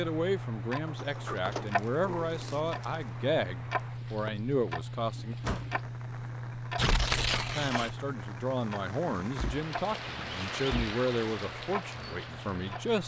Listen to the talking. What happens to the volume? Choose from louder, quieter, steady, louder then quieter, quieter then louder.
steady.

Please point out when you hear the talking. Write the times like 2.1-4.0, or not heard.
0.0-5.3, 7.5-13.0.